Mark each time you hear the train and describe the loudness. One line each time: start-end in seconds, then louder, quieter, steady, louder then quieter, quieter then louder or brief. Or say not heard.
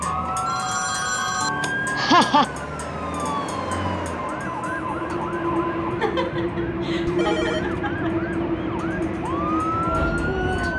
0.0-10.7 louder.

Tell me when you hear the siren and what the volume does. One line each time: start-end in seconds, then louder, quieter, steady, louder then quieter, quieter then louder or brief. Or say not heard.
0.0-10.7 quieter then louder.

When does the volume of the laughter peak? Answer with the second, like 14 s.
2 s.